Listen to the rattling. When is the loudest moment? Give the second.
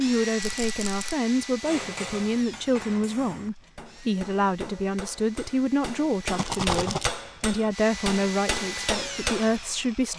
7 s.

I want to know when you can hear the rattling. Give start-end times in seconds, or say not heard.
0.4-1.1, 6.3-7.1.